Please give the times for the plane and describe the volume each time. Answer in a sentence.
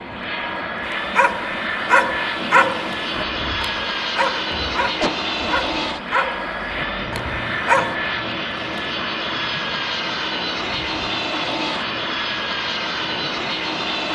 The plane can be heard from 0.0 to 14.1 s, at a steady volume.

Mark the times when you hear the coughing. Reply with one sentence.
The coughing can be heard from 5.0 to 5.5 s.